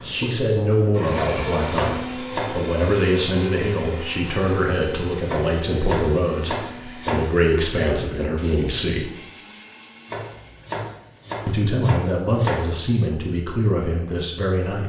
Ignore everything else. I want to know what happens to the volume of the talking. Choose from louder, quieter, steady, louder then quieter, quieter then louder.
steady.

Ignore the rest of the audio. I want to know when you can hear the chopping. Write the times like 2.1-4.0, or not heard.
1.1-2.7, 5.2-7.2, 10.1-12.7.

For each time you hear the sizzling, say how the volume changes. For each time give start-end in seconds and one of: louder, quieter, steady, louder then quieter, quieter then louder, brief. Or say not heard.
not heard.